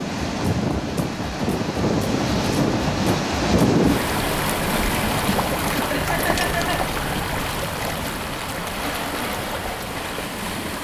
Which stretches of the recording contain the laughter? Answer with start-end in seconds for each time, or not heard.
5.9-6.8.